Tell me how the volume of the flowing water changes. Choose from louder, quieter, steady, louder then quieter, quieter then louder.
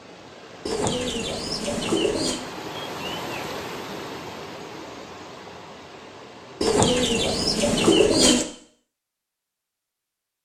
louder then quieter.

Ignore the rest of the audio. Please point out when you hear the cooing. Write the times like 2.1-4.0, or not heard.
0.7-2.4, 6.6-8.4.